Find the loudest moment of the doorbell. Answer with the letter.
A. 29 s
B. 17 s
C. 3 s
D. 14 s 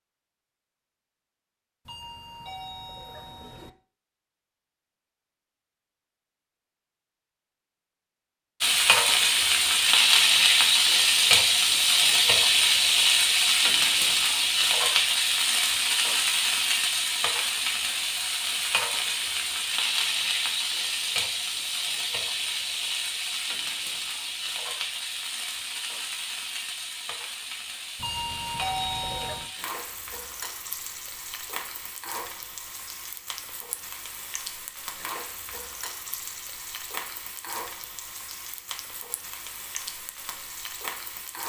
A.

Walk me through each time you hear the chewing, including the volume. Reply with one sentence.
The chewing can't be heard in this clip.